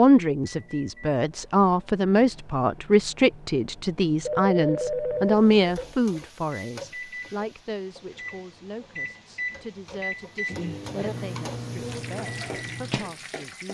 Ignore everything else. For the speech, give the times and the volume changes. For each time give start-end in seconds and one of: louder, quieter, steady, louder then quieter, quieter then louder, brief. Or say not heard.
0.0-13.7 quieter.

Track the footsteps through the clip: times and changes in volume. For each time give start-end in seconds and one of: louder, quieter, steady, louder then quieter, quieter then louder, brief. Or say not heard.
not heard.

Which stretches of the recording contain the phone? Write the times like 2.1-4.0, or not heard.
4.2-6.0.